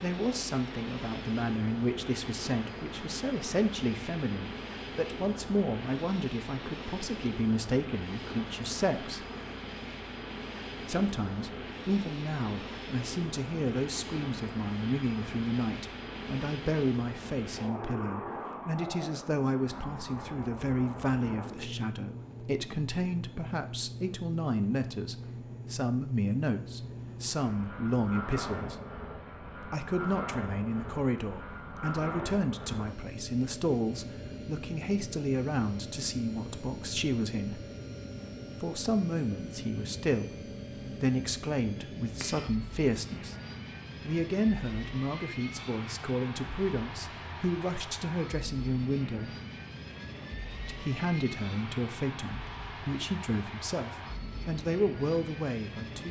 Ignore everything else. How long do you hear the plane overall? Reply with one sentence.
You can hear the plane for 56 seconds altogether.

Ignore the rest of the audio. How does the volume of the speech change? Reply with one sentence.
The loudness of the speech stays about the same.